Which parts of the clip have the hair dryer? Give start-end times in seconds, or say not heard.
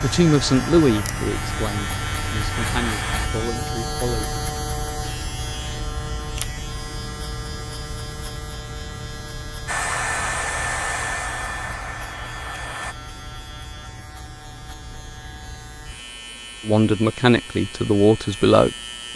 0.0-3.3, 9.7-12.9.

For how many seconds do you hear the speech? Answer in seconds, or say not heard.
7 s.